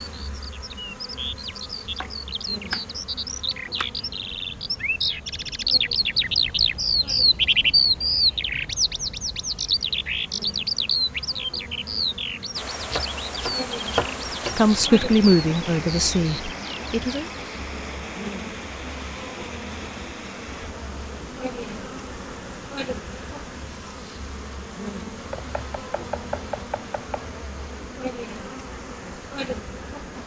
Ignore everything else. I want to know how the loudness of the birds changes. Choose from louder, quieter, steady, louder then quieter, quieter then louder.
louder then quieter.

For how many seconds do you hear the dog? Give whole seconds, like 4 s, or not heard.
not heard.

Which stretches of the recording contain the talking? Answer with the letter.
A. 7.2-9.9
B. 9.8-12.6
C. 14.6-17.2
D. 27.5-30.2
C.